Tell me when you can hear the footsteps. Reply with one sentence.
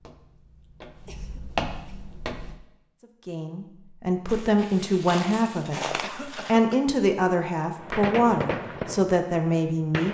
You can hear the footsteps from 0.0 to 2.6 s and from 4.2 to 6.5 s.